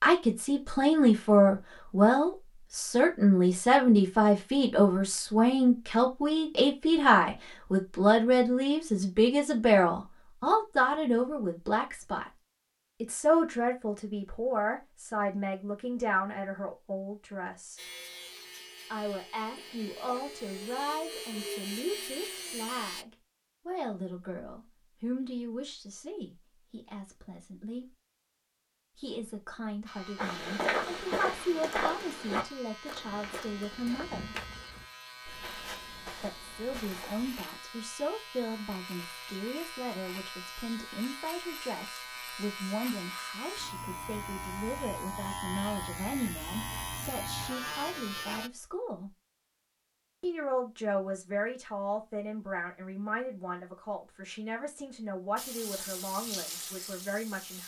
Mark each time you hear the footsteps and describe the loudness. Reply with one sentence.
You can hear the footsteps from 30.1 to 37.5 s, getting quieter.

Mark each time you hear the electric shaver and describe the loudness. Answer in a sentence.
The electric shaver can be heard from 17.8 to 23.1 s, getting louder; and from 29.9 to 48.5 s, getting louder.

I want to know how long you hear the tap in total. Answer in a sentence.
The tap can be heard for 2 seconds in total.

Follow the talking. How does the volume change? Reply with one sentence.
The volume of the talking goes down.